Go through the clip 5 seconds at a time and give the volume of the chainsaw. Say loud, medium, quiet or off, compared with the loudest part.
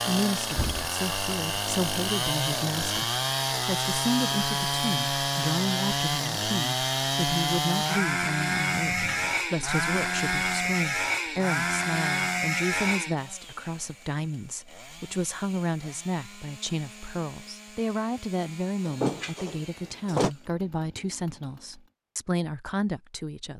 loud, loud, loud, quiet, quiet.